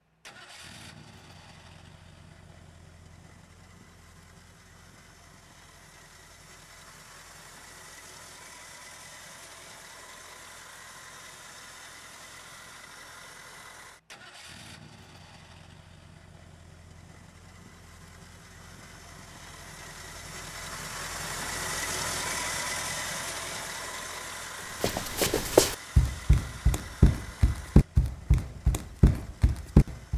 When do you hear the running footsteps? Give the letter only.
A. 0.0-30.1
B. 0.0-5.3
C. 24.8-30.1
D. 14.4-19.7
C.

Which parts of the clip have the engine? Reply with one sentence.
The engine can be heard from 0.0 to 30.1 s.